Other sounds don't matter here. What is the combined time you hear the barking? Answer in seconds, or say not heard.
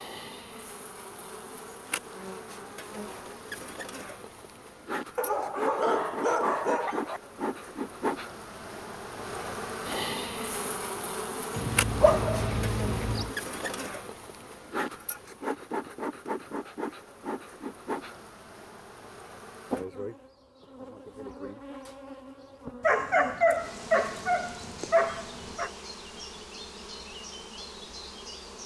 7 s.